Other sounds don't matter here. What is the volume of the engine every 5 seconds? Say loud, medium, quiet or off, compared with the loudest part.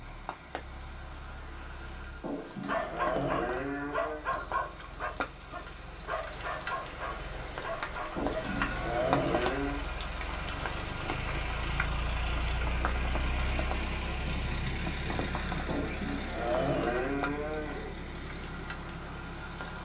quiet, medium, loud, loud.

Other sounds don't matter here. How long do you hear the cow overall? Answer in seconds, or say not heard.
6 s.